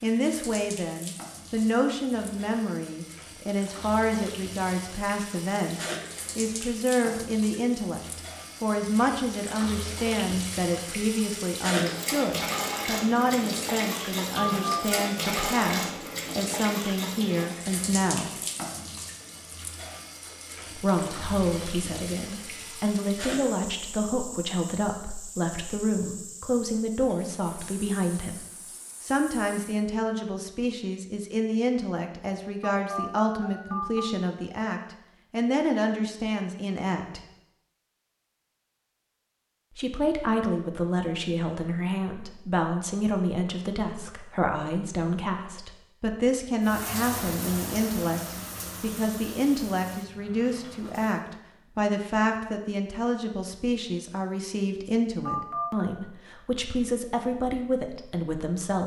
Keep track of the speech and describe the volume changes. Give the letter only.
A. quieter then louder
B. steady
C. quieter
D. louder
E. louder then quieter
B.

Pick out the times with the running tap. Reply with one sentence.
The running tap can be heard from 0.0 to 29.8 s and from 46.6 to 51.2 s.